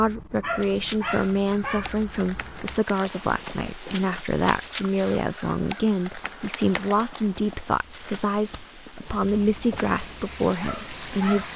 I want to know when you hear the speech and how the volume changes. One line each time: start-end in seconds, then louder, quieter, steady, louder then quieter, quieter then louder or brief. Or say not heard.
0.0-11.5 steady.